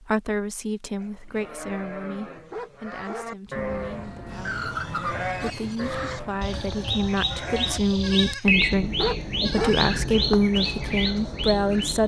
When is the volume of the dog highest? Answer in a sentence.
The volume of the dog peaks at 10 seconds.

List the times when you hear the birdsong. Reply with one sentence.
You can hear the birdsong from 4.2 to 12.0 s.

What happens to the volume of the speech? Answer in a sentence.
The volume of the speech goes down, then up.